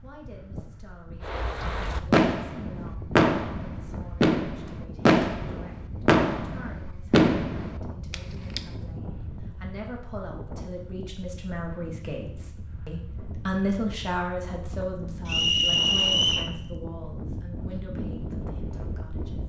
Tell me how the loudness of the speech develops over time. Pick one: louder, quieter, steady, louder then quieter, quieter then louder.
louder then quieter.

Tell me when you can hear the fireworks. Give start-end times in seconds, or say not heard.
1.2-8.6.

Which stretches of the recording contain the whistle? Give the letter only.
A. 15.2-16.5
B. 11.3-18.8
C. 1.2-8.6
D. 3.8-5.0
A.